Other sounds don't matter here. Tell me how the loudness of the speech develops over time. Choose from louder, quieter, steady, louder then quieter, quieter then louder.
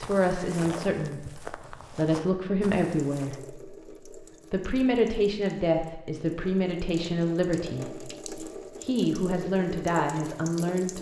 steady.